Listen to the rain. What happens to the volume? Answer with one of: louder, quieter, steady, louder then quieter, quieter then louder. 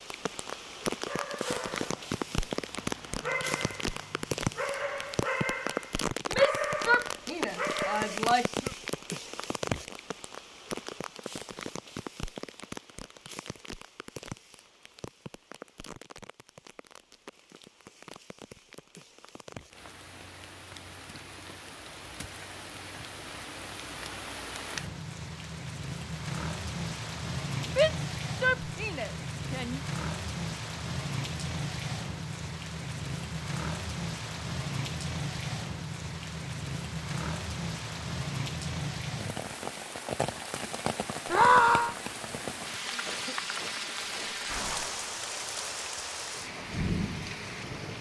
quieter then louder.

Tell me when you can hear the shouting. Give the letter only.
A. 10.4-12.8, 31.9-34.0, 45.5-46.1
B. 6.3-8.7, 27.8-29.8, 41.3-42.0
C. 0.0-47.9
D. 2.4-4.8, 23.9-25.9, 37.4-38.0
B.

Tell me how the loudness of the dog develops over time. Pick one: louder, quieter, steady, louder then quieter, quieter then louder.
louder.